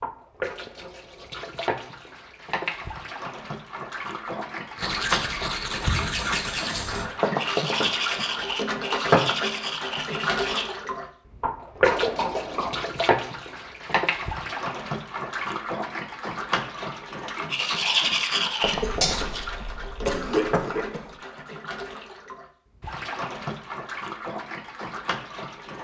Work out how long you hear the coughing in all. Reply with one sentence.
The coughing can be heard for 4 seconds in total.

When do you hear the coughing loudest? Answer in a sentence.
The volume of the coughing peaks at 20 seconds.